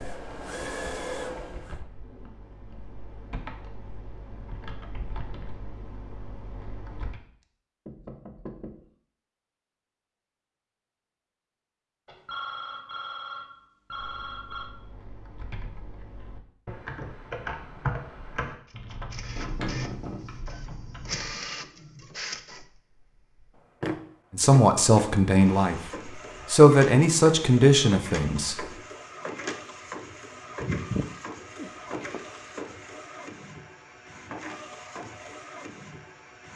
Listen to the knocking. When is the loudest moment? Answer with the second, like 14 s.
20 s.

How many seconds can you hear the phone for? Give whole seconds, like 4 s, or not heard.
3 s.